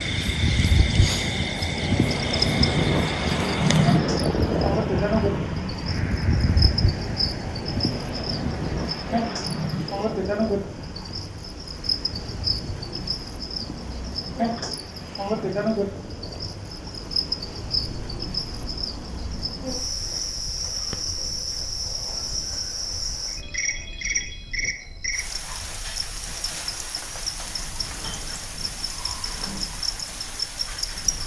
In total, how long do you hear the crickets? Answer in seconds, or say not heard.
31 s.